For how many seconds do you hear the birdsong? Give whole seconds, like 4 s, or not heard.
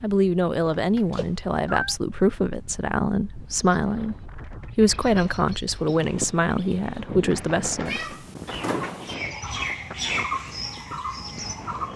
8 s.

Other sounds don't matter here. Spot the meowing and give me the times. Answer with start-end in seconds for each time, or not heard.
0.7-1.9, 7.8-9.2.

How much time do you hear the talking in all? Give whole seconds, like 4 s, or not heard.
8 s.